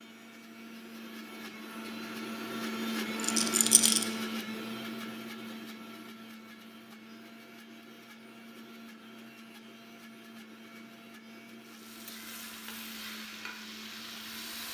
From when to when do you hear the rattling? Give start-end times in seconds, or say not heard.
3.1-4.0.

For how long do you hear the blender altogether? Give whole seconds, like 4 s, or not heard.
15 s.